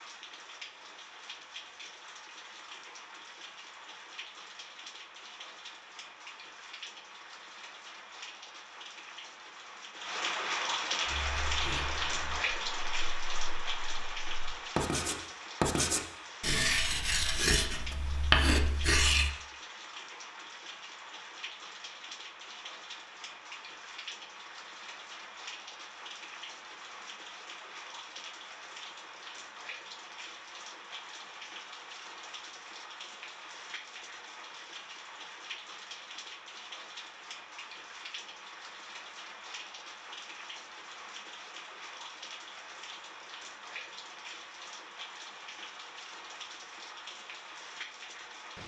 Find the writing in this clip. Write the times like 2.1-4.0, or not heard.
11.0-19.3.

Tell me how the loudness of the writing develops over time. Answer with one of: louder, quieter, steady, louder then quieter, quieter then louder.
quieter then louder.